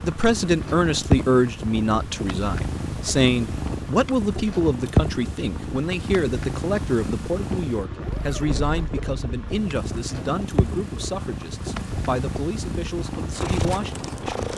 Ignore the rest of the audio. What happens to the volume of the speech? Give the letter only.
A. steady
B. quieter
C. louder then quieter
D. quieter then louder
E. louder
B.